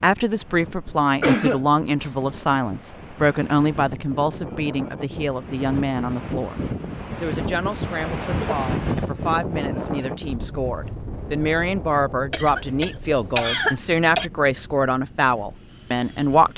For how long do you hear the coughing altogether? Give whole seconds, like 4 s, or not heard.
3 s.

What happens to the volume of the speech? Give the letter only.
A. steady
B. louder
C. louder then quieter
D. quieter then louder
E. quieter
D.